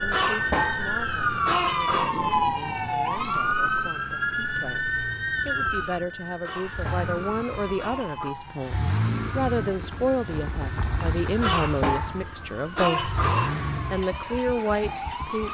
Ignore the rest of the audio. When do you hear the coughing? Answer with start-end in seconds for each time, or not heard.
0.1-2.1, 6.4-8.3, 11.4-13.5.